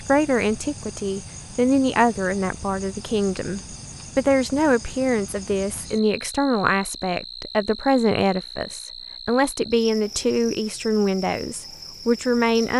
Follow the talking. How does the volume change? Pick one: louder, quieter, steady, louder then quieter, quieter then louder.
steady.